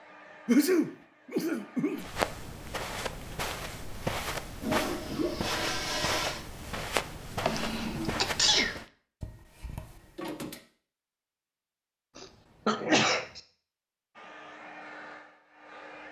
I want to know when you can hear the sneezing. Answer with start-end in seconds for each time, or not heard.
0.5-2.0, 7.4-8.8, 12.2-13.4.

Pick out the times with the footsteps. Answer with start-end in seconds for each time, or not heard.
1.9-8.8.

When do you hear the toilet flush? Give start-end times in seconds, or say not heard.
4.6-6.5, 9.2-10.6.